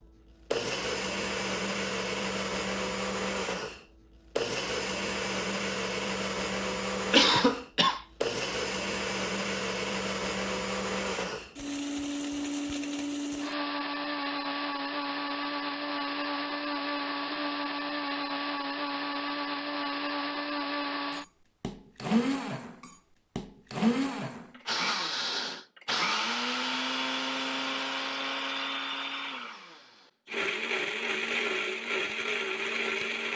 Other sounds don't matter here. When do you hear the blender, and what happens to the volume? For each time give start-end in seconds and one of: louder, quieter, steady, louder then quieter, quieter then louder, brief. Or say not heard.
0.0-33.3 steady.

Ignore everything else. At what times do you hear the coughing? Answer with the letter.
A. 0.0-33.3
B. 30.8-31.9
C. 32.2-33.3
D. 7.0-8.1
D.